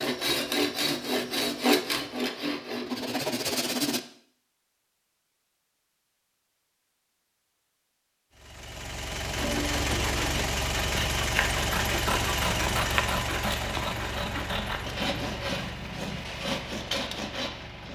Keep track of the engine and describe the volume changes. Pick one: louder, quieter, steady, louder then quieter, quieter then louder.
quieter.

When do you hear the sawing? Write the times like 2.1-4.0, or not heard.
0.0-4.0, 9.3-17.9.